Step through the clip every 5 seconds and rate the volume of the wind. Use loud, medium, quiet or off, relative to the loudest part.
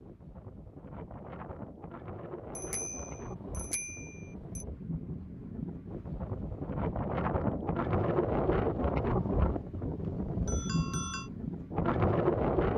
quiet, loud, loud.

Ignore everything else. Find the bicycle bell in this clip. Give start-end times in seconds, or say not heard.
2.5-4.7, 10.0-11.3.